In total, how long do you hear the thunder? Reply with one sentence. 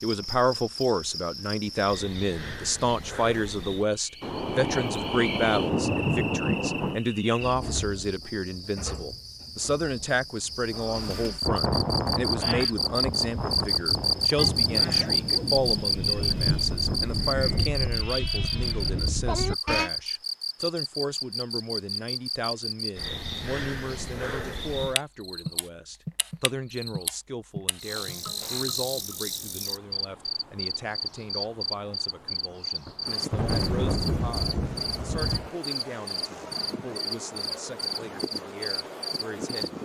The thunder can be heard for 9 seconds in total.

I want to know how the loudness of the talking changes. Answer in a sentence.
The loudness of the talking goes down.